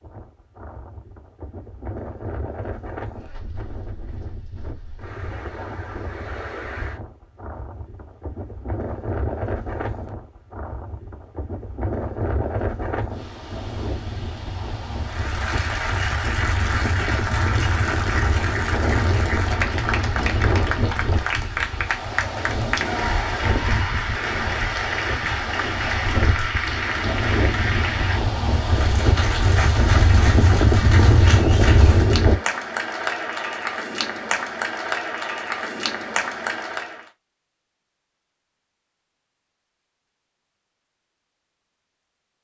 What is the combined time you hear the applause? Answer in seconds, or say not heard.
22 s.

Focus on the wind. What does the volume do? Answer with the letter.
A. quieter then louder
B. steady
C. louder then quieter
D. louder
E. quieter
D.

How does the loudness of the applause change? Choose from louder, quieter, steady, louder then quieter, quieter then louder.
steady.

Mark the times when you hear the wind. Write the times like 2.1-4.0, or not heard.
0.0-32.4.